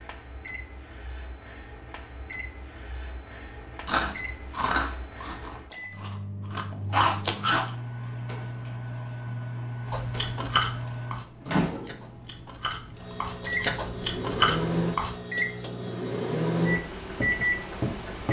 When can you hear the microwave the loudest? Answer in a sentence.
The loudest moment of the microwave is at 17 seconds.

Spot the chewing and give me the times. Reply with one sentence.
You can hear the chewing from 3.9 to 7.7 s and from 9.8 to 15.2 s.